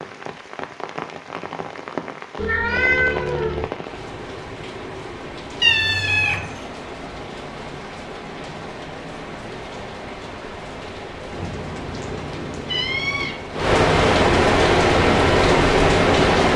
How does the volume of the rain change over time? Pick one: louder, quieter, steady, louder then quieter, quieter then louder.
louder.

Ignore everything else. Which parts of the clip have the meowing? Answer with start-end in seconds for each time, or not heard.
2.4-3.6, 5.6-6.7, 11.3-13.3.